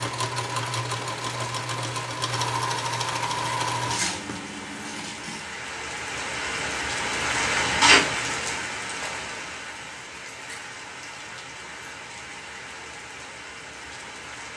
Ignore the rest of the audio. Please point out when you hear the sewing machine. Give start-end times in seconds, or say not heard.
0.0-5.5.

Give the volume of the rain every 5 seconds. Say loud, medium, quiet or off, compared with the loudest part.
quiet, loud, quiet.